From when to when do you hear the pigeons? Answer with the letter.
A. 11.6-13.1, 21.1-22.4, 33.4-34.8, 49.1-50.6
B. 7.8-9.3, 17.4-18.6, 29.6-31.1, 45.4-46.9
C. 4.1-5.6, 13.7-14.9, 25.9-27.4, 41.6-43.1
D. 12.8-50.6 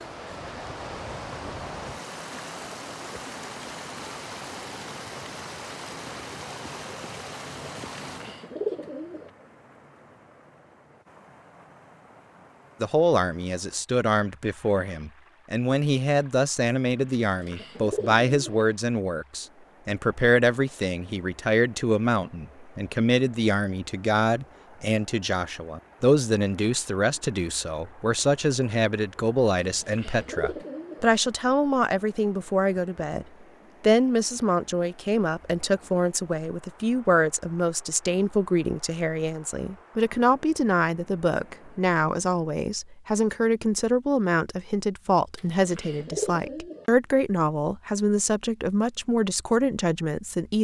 B.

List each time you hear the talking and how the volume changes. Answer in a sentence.
You can hear the talking from 12.8 to 50.6 s, at a steady volume.